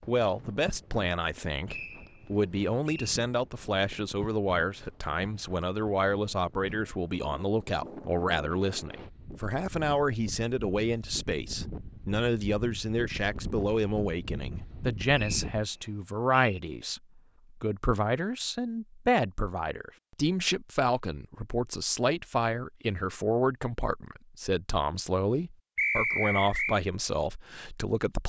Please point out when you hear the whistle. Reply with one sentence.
The whistle can be heard from 1.6 to 3.1 s, from 15.1 to 16.6 s and from 25.8 to 26.8 s.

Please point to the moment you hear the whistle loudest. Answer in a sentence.
The loudest moment of the whistle is at 26 seconds.